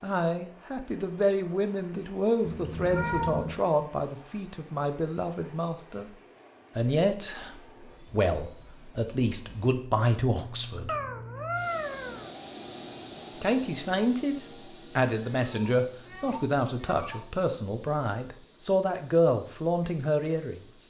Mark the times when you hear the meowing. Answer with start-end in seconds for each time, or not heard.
2.5-3.6, 10.8-12.3, 15.3-17.3.